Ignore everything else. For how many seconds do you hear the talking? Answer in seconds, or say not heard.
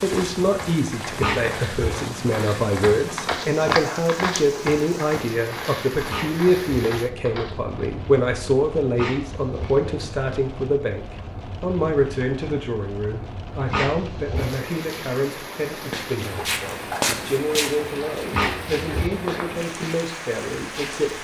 21 s.